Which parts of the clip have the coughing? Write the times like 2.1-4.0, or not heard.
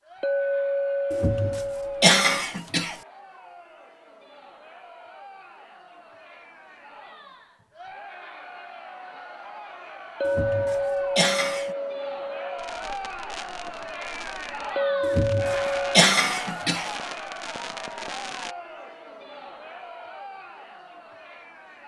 1.1-3.0, 10.2-11.8, 15.0-16.9.